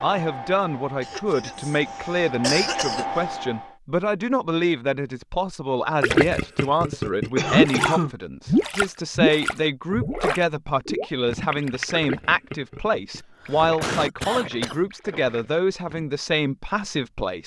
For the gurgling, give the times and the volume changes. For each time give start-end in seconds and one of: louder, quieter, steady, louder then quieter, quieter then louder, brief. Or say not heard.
6.0-16.1 quieter.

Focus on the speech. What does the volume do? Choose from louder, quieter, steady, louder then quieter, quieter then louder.
steady.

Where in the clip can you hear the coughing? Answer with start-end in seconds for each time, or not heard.
1.0-3.2, 7.3-8.2, 13.2-14.9.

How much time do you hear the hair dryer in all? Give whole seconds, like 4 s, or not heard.
4 s.